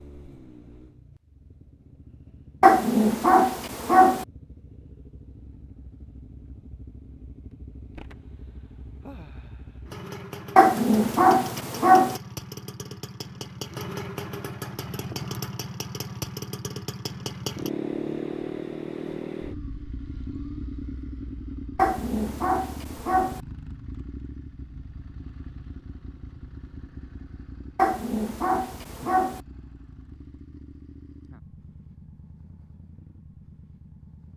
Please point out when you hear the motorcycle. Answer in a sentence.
You can hear the motorcycle from 0.0 to 34.3 s.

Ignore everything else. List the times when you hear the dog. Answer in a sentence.
The dog can be heard from 2.6 to 4.2 s, from 10.6 to 12.2 s, from 21.8 to 23.4 s and from 27.8 to 29.4 s.